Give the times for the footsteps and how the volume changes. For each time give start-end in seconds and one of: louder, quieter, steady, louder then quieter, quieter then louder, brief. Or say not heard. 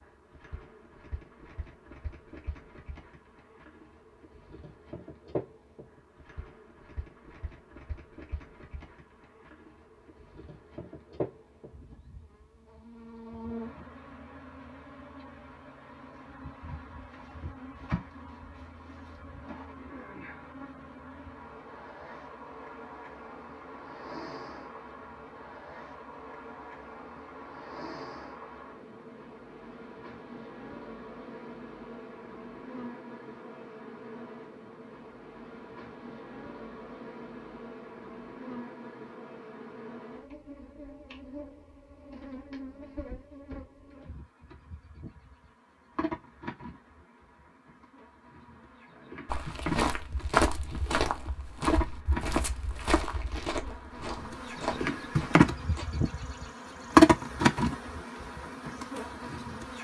49.2-55.9 quieter.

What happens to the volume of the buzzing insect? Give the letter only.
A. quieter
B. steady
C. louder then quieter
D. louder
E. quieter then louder
D.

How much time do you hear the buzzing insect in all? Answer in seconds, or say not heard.
60 s.